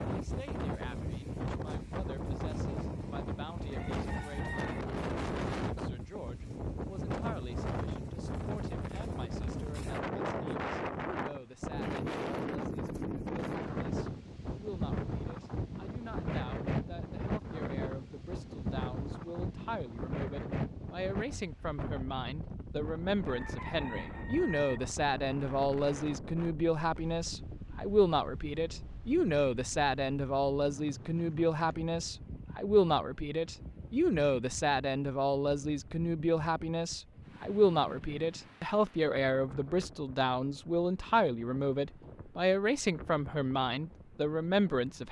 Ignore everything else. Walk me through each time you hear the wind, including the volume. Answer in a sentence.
The wind can be heard from 0.0 to 45.0 s, getting quieter.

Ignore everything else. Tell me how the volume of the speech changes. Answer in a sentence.
The volume of the speech goes up.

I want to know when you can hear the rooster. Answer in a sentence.
The rooster can be heard from 2.8 to 4.8 s and from 23.2 to 24.8 s.